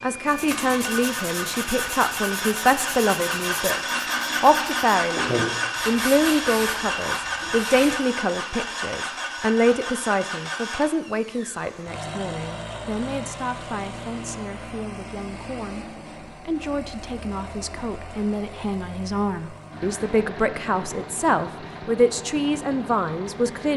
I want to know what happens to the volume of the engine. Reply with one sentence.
The volume of the engine goes down.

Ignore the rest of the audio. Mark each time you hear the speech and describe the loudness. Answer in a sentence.
You can hear the speech from 0.0 to 23.7 s, getting quieter then louder.